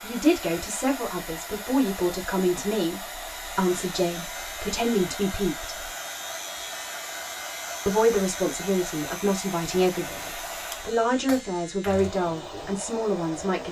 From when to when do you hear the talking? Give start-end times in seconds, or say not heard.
0.0-5.9, 7.8-13.6.